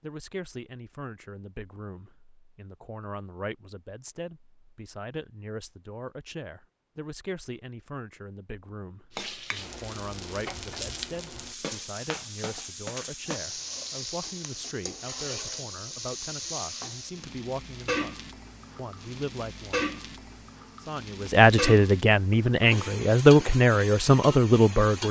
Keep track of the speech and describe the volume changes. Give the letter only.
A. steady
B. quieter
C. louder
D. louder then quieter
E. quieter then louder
C.